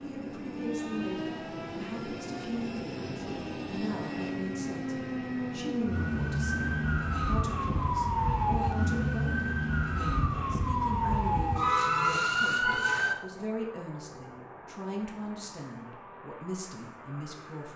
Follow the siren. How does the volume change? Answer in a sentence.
The volume of the siren goes up.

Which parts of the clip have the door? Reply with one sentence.
The door can't be heard in this clip.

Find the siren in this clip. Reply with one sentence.
The siren can be heard from 0.0 to 13.2 s.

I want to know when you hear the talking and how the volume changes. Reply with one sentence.
The talking can be heard from 0.0 to 17.7 s, at a steady volume.